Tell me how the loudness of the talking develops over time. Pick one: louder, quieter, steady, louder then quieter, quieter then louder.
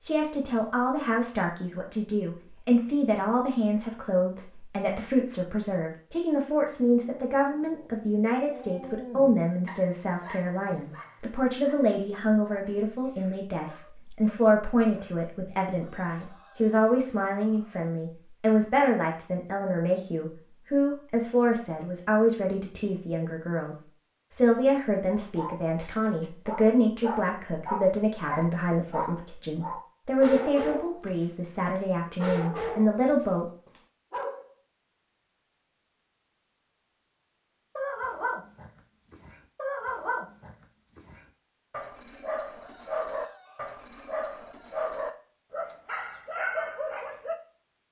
steady.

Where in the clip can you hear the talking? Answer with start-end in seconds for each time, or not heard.
0.0-33.5.